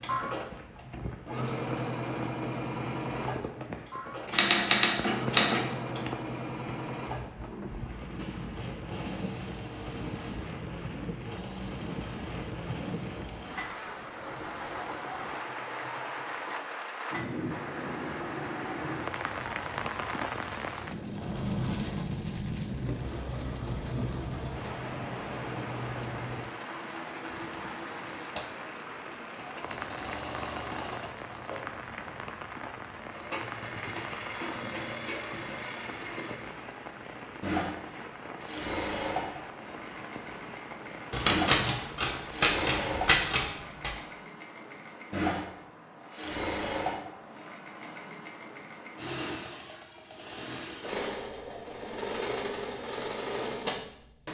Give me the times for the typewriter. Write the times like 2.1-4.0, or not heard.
4.2-6.0, 41.1-43.9.